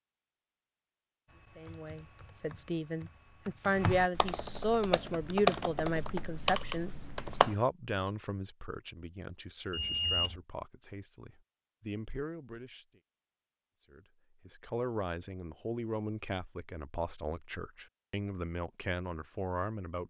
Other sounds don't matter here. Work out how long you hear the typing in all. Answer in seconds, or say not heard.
6 s.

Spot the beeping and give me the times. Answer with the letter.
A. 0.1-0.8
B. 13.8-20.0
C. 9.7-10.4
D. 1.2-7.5
C.